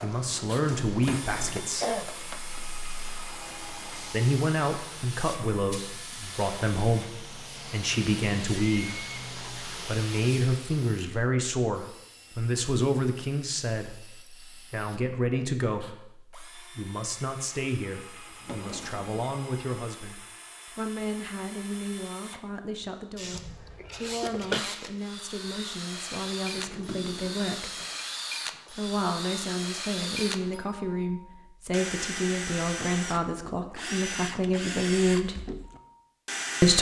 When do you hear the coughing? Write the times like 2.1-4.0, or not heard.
1.5-2.6, 23.3-24.6.